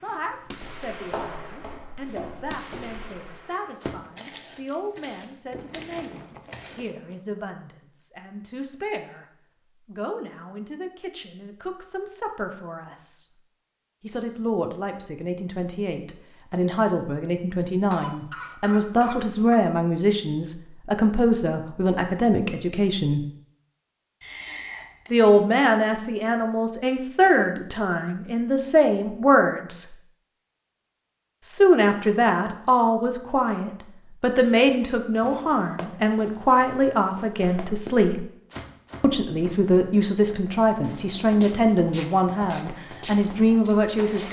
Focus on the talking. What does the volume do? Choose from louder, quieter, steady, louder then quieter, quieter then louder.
louder.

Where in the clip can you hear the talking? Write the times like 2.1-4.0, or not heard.
0.0-9.2, 9.8-13.2, 14.0-23.2, 25.1-29.9, 31.4-38.2, 39.0-44.2.